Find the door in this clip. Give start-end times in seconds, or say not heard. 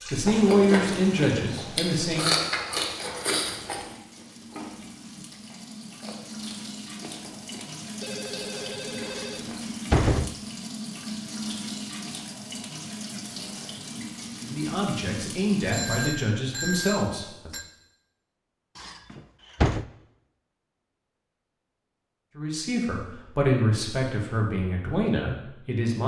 9.2-10.3, 18.8-19.9.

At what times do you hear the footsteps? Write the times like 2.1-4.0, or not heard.
not heard.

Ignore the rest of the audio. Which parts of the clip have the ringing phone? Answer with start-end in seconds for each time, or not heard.
8.0-9.5, 15.7-17.6.